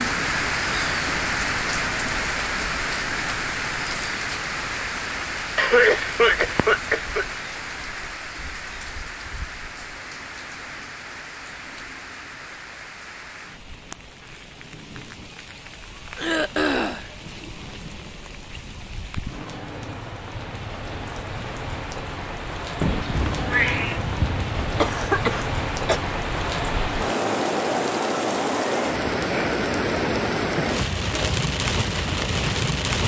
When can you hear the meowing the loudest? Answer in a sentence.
The volume of the meowing peaks at 24 seconds.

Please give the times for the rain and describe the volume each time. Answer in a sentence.
You can hear the rain from 0.0 to 33.0 s, getting quieter then louder.